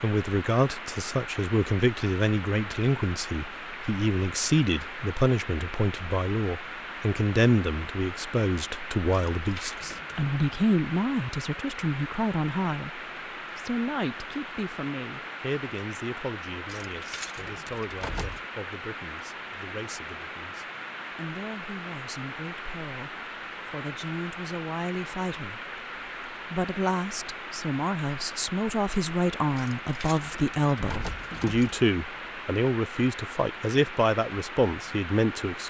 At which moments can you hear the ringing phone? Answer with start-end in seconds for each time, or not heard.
not heard.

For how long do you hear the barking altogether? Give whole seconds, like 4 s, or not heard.
not heard.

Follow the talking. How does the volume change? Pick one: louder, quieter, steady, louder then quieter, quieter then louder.
quieter then louder.